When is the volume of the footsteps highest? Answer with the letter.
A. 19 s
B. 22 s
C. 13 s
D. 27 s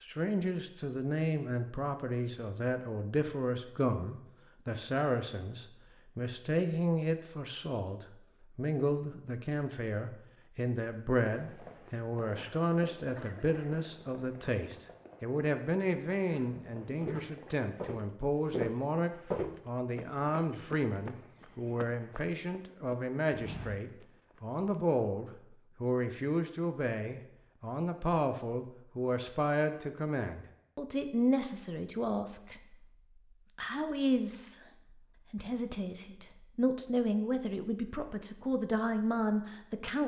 A.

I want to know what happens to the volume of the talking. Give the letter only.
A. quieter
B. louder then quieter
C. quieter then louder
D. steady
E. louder
D.